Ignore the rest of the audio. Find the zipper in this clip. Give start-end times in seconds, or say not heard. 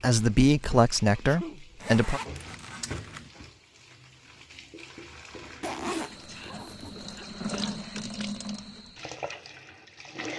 1.8-3.3, 5.6-7.2.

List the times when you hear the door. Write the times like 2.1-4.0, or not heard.
not heard.